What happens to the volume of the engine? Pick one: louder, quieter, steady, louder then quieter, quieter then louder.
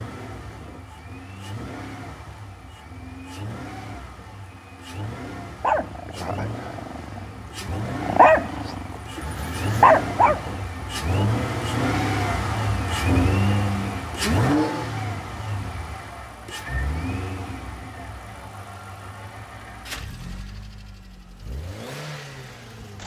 louder then quieter.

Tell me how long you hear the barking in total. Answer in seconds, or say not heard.
5 s.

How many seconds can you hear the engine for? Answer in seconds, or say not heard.
23 s.